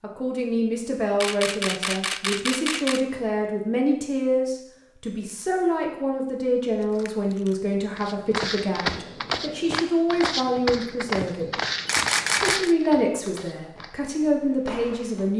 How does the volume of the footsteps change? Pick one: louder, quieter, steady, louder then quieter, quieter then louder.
quieter.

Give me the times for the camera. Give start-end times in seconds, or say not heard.
1.2-3.0, 6.8-7.7, 11.8-12.8.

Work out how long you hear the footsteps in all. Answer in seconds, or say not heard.
7 s.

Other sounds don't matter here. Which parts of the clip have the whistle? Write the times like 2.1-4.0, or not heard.
not heard.